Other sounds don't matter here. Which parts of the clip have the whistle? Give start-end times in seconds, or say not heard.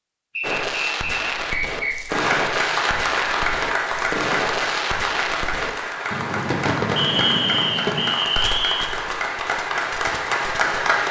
0.3-1.9, 7.0-8.9.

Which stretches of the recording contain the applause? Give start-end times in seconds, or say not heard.
2.0-11.0.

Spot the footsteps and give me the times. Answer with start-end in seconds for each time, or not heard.
not heard.